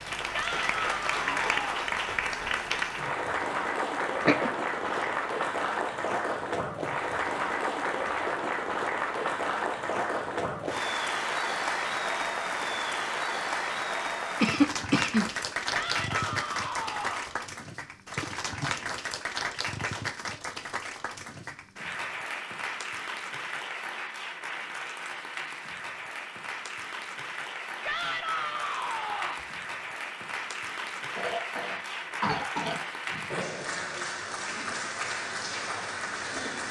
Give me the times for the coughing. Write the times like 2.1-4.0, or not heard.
4.2-5.1, 14.4-15.3, 31.1-33.3.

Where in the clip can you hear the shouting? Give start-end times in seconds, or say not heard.
0.3-1.9, 15.7-17.4, 27.8-29.4.